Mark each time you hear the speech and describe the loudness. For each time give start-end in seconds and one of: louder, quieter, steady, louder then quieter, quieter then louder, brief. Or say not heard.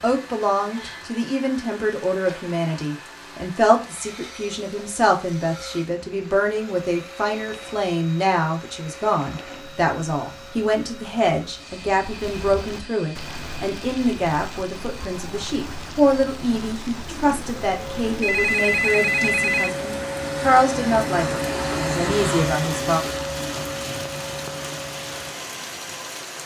0.0-23.0 steady.